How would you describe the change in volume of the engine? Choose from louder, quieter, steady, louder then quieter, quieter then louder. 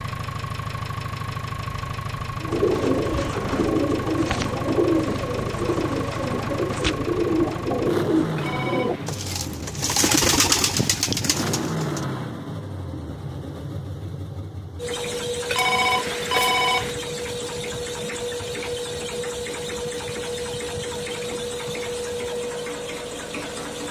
steady.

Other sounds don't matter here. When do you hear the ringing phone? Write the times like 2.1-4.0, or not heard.
8.3-9.2, 15.4-16.9.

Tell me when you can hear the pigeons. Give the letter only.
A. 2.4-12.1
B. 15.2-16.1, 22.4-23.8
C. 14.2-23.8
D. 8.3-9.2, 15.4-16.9
A.